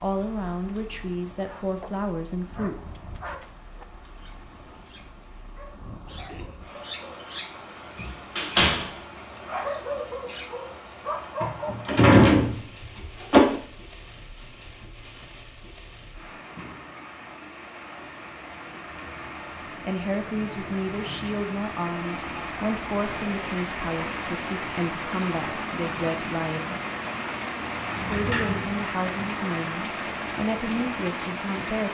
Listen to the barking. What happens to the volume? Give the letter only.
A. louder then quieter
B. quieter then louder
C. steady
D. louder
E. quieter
B.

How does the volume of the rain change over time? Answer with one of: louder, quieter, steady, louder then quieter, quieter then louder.
louder.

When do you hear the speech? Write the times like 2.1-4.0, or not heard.
0.0-2.8, 19.6-26.6, 28.1-31.8.